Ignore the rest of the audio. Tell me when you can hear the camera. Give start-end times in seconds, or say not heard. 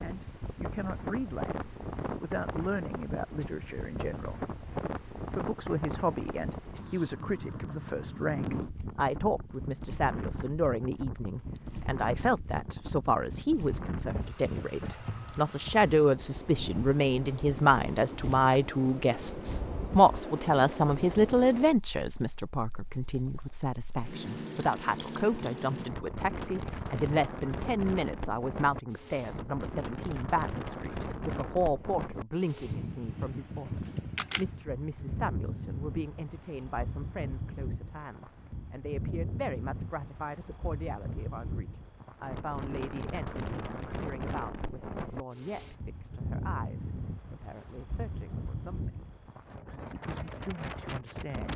33.8-34.5.